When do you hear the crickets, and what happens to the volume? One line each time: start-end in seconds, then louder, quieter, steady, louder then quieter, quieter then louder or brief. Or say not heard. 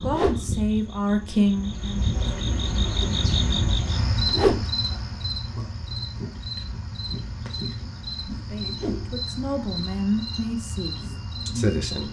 0.0-12.0 louder then quieter.